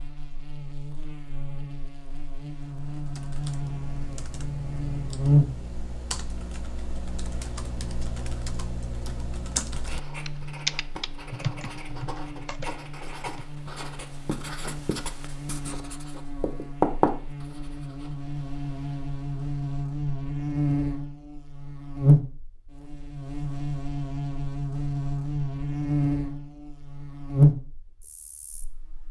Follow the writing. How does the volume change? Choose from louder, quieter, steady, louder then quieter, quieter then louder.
louder then quieter.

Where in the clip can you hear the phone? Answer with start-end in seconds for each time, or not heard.
not heard.